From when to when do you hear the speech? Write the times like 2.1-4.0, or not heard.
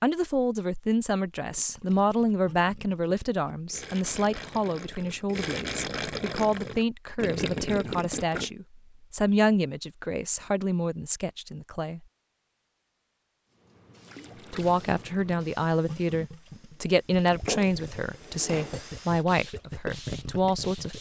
0.0-12.0, 14.5-20.9.